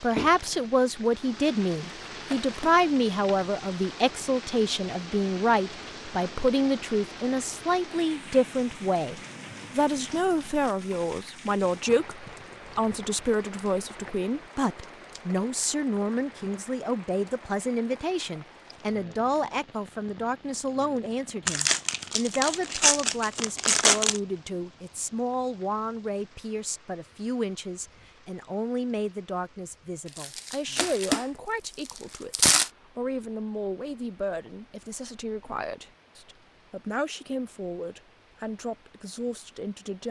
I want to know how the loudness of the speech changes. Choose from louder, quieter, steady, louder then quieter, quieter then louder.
quieter.